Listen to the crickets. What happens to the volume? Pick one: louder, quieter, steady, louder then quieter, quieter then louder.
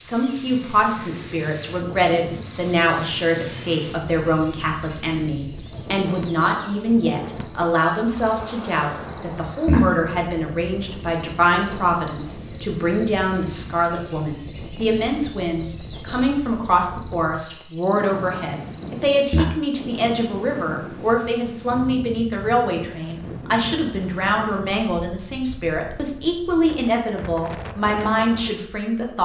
steady.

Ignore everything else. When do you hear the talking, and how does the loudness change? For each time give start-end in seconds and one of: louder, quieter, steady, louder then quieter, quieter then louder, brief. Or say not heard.
0.0-29.2 steady.